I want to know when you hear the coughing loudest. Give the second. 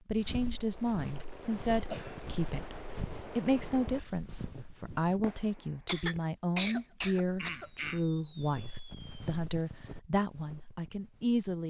7 s.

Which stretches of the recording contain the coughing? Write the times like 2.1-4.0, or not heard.
1.1-2.2, 5.8-8.0.